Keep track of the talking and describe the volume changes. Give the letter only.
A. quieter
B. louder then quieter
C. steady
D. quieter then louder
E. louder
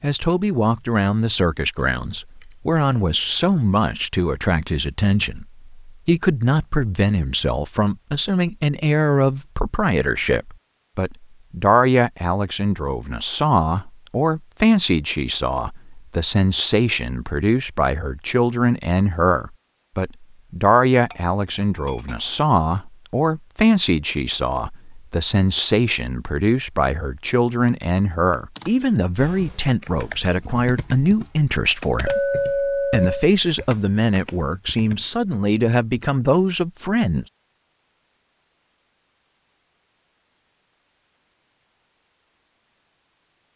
C.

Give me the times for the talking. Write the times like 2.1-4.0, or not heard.
0.0-37.2.